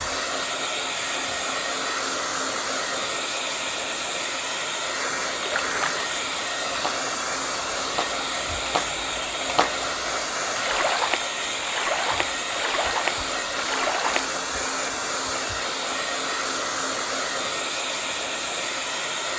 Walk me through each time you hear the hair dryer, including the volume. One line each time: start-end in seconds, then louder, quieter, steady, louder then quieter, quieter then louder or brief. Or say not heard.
0.0-19.3 steady.